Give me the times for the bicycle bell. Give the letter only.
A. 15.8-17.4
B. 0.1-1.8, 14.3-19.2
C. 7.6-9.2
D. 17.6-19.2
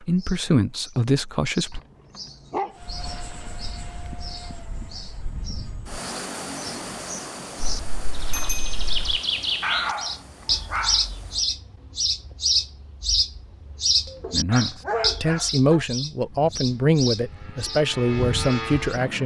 C.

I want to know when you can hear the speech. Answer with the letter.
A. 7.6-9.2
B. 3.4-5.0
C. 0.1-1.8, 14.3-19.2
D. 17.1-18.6
C.